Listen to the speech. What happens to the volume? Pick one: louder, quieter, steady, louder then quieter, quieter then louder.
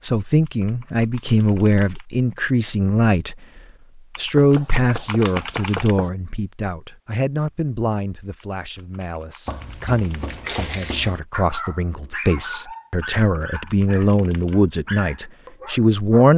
quieter then louder.